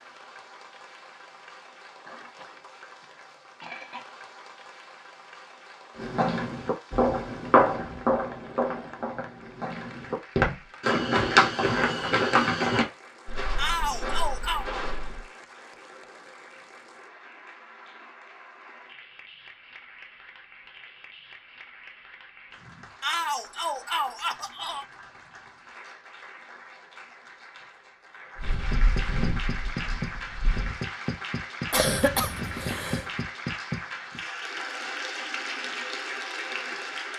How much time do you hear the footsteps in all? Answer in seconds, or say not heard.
12 s.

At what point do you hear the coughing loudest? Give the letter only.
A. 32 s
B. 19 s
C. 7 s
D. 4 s
A.